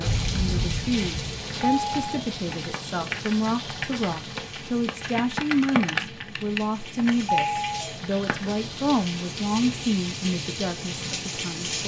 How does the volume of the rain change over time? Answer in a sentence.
The loudness of the rain goes down, then up.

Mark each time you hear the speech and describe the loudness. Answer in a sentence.
The speech can be heard from 0.0 to 11.8 s, at a steady volume.